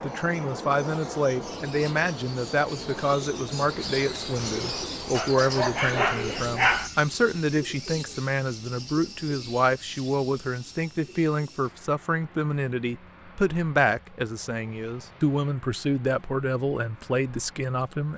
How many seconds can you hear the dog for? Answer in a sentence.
The dog can be heard for 2 seconds in total.